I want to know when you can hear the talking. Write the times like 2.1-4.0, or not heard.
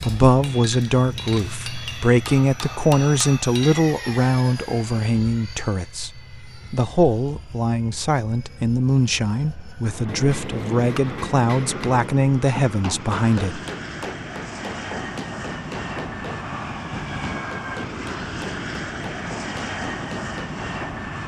0.0-13.6.